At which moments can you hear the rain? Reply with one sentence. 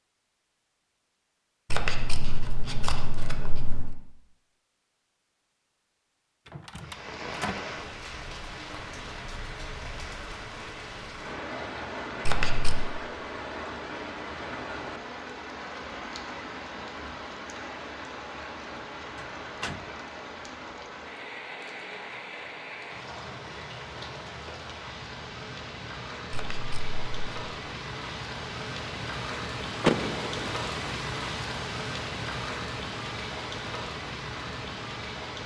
The rain can be heard from 6.8 to 35.4 s.